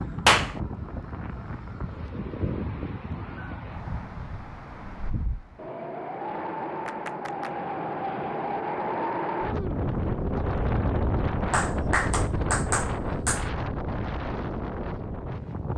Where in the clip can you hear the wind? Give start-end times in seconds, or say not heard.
0.0-15.7.